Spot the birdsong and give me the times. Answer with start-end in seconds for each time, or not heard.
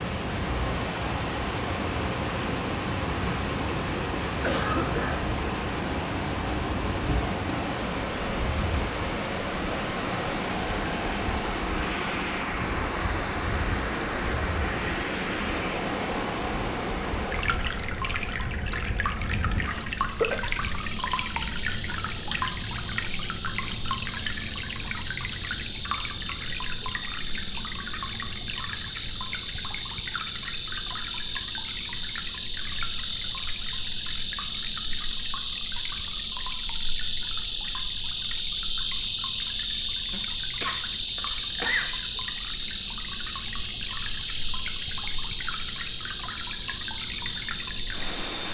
not heard.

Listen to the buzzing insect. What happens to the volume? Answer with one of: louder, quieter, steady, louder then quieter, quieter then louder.
louder.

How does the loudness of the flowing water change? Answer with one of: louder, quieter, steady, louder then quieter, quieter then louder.
quieter.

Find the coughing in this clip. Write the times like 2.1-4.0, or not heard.
4.4-5.2, 19.6-20.4, 40.1-42.0.